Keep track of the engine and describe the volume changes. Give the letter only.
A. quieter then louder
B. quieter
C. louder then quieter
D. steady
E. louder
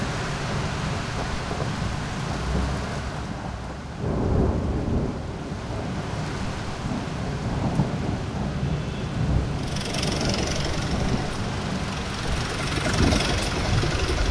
A.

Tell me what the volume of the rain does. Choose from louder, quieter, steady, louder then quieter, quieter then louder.
steady.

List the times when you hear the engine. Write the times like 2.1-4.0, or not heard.
9.6-14.2.